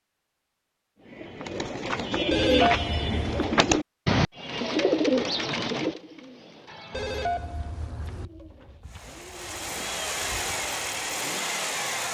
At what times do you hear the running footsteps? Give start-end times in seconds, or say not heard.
not heard.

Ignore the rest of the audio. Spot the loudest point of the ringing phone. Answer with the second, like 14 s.
3 s.